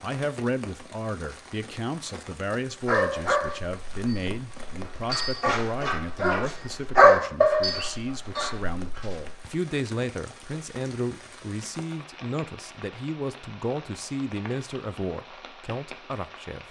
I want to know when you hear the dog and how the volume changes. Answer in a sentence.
The dog can be heard from 2.8 to 9.4 s, getting louder then quieter.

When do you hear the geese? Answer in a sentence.
You can't hear the geese here.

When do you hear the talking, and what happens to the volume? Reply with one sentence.
The talking can be heard from 0.0 to 16.6 s, at a steady volume.